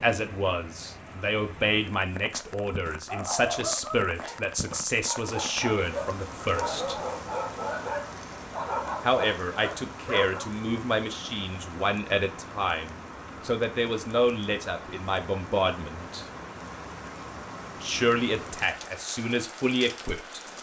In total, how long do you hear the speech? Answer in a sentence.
You can hear the speech for 17 seconds altogether.